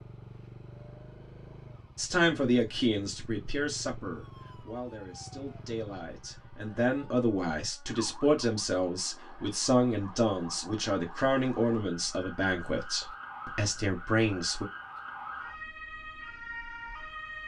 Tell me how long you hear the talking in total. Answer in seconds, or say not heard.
13 s.